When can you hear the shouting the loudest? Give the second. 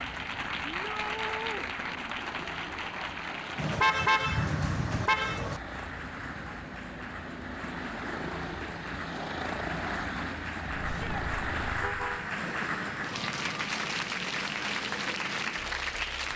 1 s.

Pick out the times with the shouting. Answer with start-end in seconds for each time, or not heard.
0.7-1.7, 10.8-11.2.